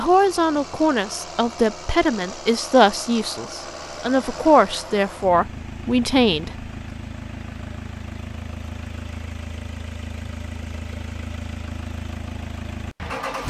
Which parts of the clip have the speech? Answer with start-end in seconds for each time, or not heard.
0.0-6.5.